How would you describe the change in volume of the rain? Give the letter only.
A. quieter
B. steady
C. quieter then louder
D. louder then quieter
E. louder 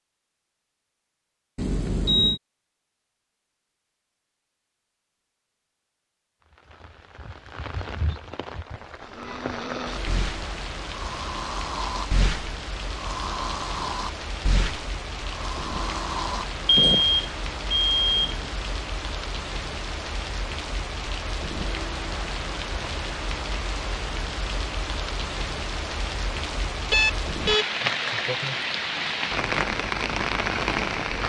E.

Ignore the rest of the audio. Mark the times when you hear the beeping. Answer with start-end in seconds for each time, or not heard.
1.6-2.4, 16.6-18.4, 26.9-27.6.